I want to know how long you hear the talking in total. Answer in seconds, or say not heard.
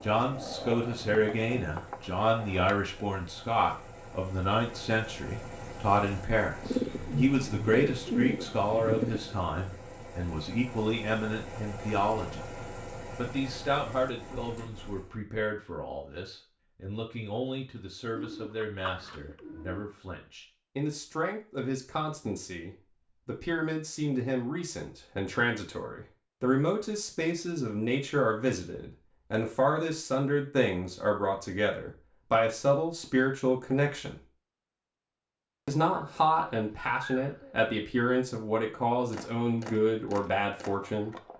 39 s.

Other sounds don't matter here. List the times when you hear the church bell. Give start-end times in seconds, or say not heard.
not heard.